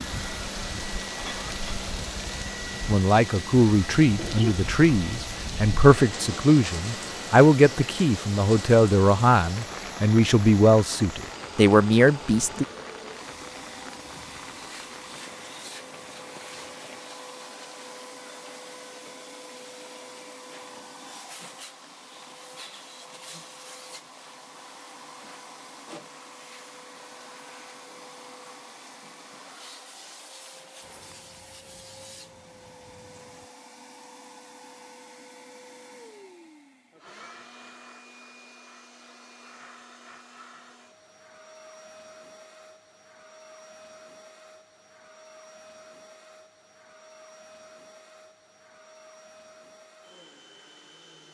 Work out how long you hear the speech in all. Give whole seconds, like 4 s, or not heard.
10 s.